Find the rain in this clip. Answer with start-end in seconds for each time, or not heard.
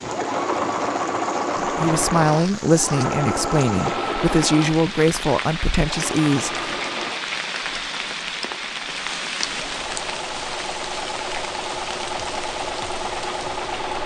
0.0-14.0.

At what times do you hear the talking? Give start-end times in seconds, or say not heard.
1.6-6.7.